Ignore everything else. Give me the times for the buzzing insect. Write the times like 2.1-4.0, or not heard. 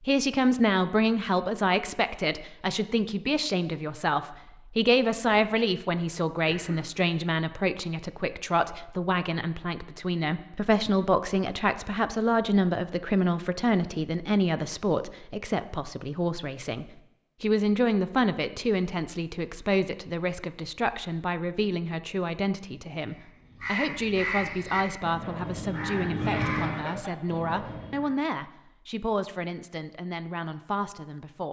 not heard.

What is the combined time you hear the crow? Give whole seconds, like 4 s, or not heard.
5 s.